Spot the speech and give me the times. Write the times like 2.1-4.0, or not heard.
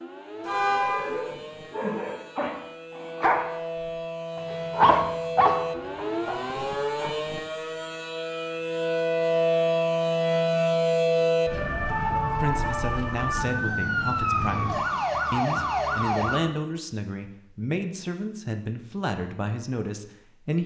12.3-20.6.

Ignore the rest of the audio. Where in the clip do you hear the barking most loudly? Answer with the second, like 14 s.
5 s.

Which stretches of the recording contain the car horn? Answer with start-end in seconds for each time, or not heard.
0.5-1.2.